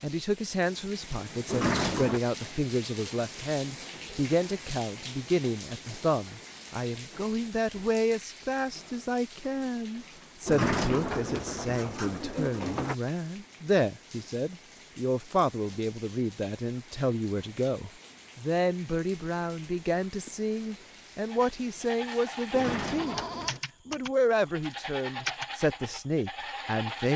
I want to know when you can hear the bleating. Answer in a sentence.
The bleating can be heard from 21.2 to 27.1 s.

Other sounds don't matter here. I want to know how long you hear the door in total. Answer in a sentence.
The door can be heard for 4 seconds in total.